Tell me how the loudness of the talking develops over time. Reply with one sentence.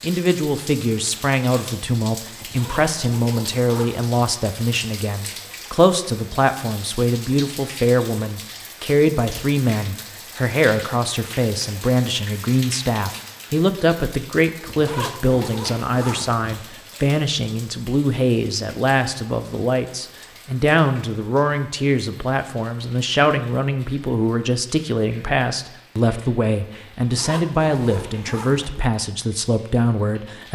The loudness of the talking stays about the same.